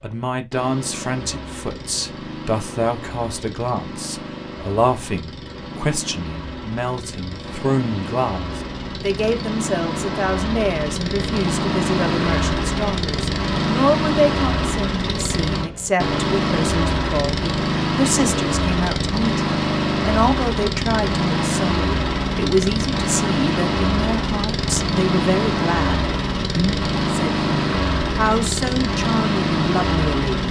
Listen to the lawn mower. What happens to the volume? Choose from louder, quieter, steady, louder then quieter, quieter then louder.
louder.